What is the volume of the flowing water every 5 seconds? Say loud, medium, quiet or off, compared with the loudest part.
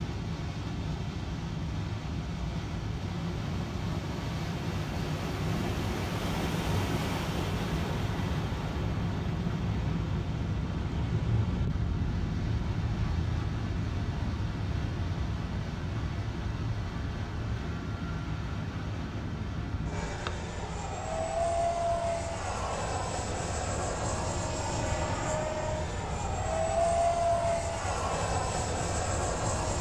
medium, loud, medium, medium, medium, medium.